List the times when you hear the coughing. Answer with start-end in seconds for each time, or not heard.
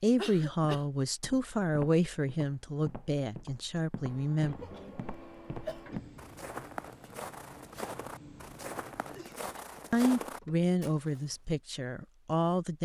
0.1-0.8, 4.6-5.8, 9.1-9.8.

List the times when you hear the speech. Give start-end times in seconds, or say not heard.
0.0-4.5, 9.9-12.8.